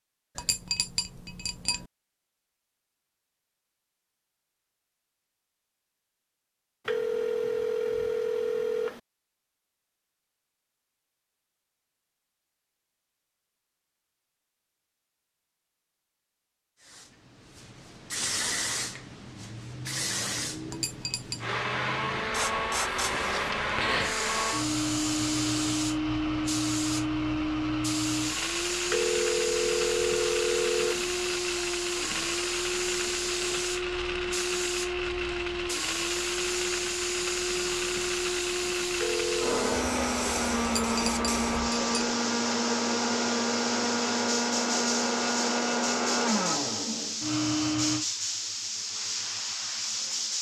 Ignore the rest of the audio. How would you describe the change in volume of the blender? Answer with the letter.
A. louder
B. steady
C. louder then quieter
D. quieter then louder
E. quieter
B.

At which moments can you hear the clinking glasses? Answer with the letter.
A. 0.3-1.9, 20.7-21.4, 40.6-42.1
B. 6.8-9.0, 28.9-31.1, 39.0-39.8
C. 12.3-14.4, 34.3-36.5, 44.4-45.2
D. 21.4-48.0
A.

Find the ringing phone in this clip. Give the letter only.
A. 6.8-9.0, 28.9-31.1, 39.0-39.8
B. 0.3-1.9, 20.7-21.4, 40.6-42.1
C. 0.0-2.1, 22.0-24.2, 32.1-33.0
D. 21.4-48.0
A.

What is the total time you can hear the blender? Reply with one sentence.
The blender can be heard for 27 seconds in total.